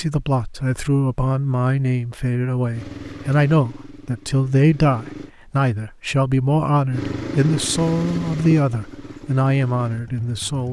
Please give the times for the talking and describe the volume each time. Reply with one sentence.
You can hear the talking from 0.0 to 10.6 s, at a steady volume.